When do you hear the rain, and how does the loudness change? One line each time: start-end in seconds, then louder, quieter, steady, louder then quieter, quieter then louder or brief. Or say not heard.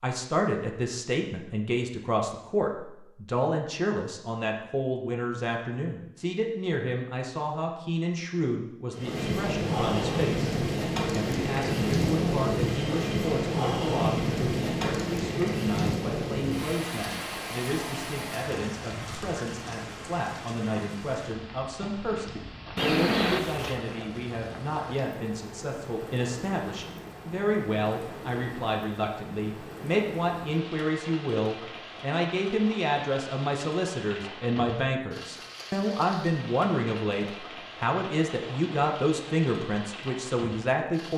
8.9-41.1 quieter.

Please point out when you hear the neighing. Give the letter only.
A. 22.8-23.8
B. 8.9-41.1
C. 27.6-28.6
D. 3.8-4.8
A.